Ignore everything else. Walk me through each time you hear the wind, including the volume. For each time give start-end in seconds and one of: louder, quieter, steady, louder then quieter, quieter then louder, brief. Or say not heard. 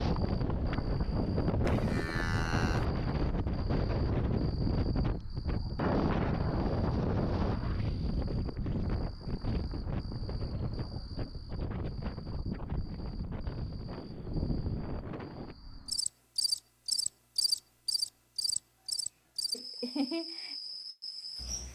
0.0-15.6 quieter.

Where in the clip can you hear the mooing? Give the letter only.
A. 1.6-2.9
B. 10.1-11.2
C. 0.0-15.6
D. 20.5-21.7
A.